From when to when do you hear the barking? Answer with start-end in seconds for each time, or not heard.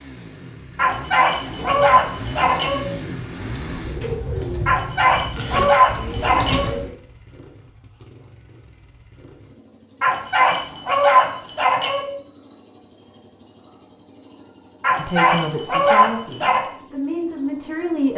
0.8-2.8, 4.7-6.7, 10.0-12.0, 14.8-16.6.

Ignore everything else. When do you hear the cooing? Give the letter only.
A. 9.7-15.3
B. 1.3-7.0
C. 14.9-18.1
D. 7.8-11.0
B.